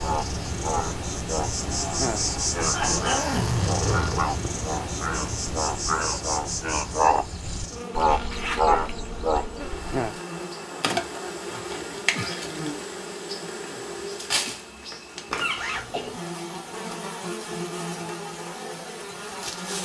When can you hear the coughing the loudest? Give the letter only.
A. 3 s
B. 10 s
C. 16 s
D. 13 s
A.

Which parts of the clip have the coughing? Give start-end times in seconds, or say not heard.
1.6-3.4, 14.9-16.1.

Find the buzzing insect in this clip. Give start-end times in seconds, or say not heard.
0.0-19.8.